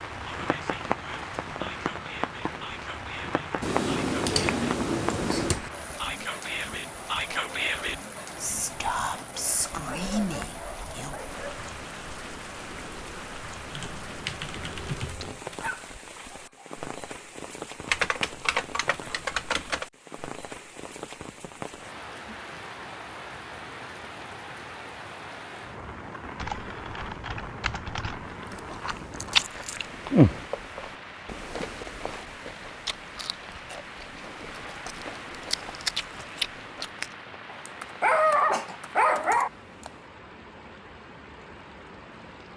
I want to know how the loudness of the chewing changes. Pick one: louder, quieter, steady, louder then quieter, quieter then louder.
quieter then louder.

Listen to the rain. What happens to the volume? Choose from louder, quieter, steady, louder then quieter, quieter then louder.
quieter.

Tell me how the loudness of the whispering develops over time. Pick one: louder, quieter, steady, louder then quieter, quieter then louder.
louder.